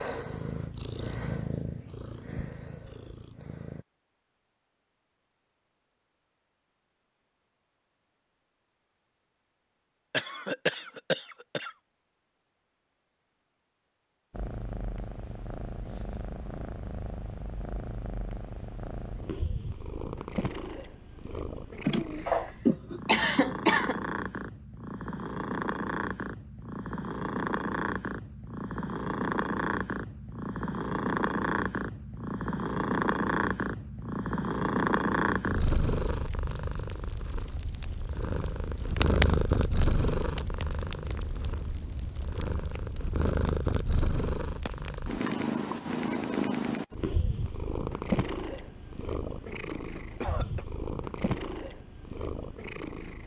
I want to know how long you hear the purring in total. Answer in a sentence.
The purring can be heard for 43 seconds in total.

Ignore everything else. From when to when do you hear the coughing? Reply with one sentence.
You can hear the coughing from 10.1 to 11.7 s, from 21.9 to 24.0 s and from 50.0 to 50.6 s.